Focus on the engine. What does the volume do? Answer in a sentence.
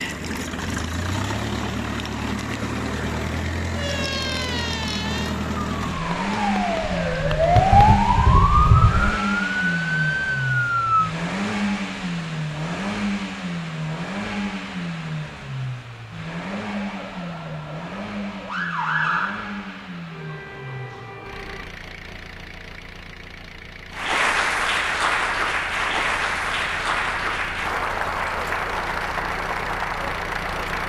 The loudness of the engine goes down.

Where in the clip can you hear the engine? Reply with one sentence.
You can hear the engine from 0.0 to 30.8 s.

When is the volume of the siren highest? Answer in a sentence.
The volume of the siren peaks at 8 seconds.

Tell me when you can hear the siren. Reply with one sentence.
The siren can be heard from 3.8 to 11.1 s and from 16.6 to 21.7 s.